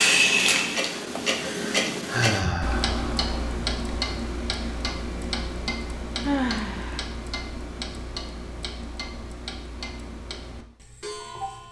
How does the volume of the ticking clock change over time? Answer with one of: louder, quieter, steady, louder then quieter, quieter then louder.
quieter.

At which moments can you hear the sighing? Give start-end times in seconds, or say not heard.
1.1-3.3, 6.2-7.0.